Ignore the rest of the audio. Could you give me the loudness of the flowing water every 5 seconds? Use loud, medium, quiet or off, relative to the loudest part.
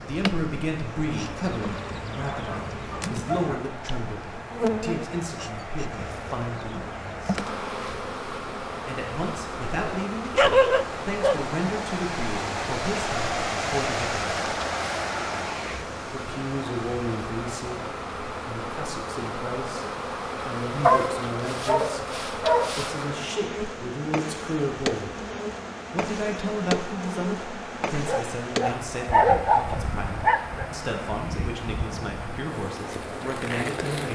medium, medium, loud, medium, medium, medium, medium.